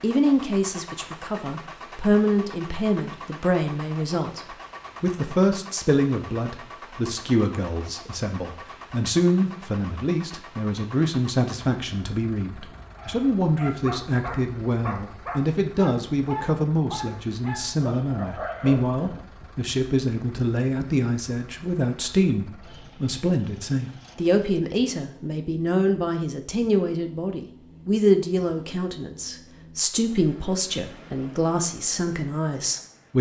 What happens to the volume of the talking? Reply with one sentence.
The volume of the talking stays about the same.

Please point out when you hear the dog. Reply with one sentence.
The dog can be heard from 12.9 to 19.2 s.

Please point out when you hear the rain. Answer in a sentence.
The rain can't be heard in this clip.